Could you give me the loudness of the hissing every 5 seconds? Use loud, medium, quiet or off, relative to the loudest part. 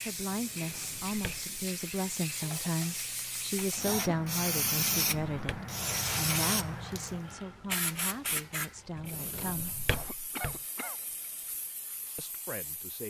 loud, loud, quiet.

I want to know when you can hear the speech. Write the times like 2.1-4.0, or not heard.
0.1-9.8, 12.2-13.0.